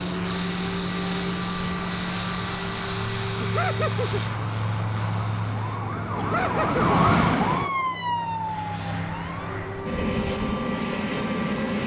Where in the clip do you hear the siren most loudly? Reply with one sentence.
The volume of the siren peaks at 7 seconds.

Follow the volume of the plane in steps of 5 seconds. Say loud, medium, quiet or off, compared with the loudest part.
loud, medium, loud.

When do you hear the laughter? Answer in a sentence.
The laughter can be heard from 3.4 to 4.2 s and from 6.2 to 6.8 s.